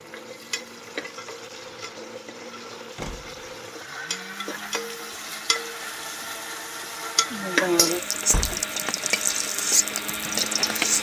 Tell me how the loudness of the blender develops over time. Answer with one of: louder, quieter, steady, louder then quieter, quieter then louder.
louder.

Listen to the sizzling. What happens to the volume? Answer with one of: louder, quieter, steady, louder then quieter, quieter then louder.
louder.